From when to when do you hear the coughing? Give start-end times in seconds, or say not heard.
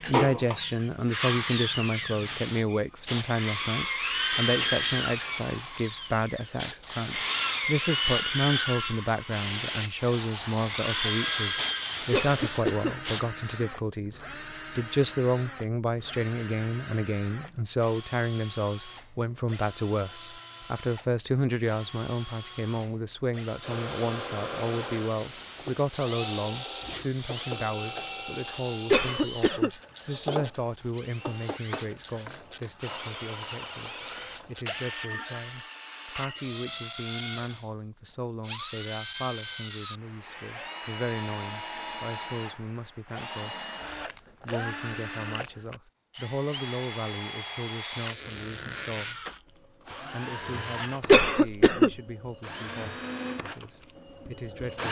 12.1-12.9, 28.9-29.7, 51.0-51.9.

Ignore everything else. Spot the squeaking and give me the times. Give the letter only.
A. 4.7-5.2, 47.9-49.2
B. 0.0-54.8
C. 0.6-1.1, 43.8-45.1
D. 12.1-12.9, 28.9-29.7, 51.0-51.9
A.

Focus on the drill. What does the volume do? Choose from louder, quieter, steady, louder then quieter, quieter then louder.
quieter.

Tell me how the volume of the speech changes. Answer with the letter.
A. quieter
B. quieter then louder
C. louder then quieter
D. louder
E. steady
A.